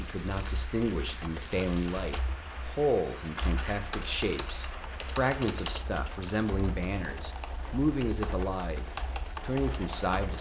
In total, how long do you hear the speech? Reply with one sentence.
The speech can be heard for 10 seconds in total.